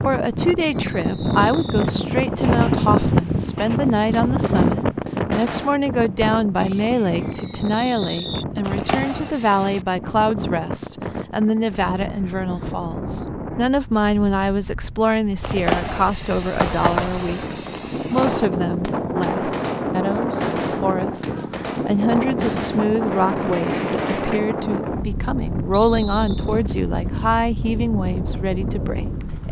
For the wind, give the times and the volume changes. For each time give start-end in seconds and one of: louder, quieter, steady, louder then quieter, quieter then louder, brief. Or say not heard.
0.0-29.4 quieter then louder.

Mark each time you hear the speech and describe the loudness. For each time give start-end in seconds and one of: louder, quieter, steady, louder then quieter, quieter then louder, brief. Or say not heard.
0.0-29.4 steady.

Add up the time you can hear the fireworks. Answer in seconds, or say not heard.
18 s.